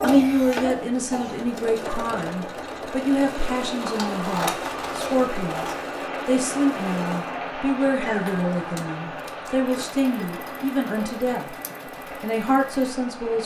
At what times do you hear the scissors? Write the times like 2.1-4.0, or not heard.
3.8-5.8.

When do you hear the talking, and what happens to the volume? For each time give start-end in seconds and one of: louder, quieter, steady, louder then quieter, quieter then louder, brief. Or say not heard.
0.0-11.6 steady
12.2-13.4 brief.